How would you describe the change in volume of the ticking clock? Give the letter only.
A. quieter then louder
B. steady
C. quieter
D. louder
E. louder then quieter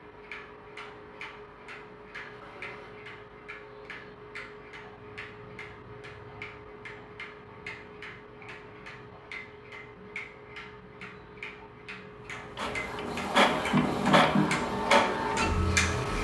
D.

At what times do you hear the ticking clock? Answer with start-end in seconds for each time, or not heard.
0.0-16.1.